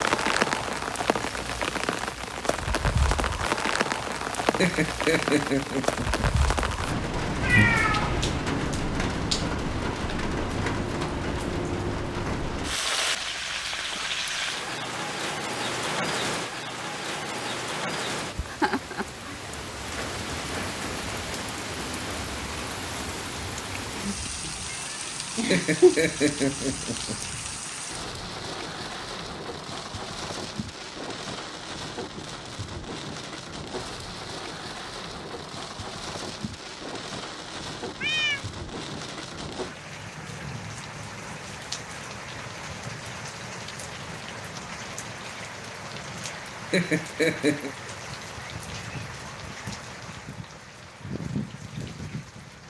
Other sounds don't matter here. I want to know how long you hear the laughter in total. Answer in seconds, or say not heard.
5 s.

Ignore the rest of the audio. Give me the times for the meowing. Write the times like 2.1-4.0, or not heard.
7.4-8.4, 24.4-26.0, 38.0-38.5.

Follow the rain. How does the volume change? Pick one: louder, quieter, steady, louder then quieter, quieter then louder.
quieter.